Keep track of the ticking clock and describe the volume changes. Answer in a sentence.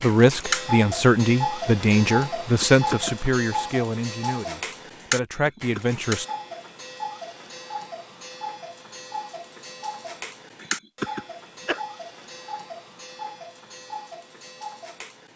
The loudness of the ticking clock goes down.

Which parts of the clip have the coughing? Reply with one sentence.
You can hear the coughing from 2.5 to 3.1 s, from 5.3 to 6.0 s and from 10.6 to 11.8 s.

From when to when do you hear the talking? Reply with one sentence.
You can hear the talking from 0.0 to 6.2 s.